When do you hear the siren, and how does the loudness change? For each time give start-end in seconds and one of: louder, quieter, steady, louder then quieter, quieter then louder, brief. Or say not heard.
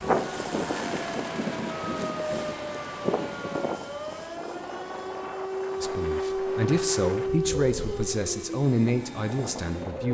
0.0-10.0 louder then quieter.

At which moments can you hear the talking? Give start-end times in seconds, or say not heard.
5.8-10.0.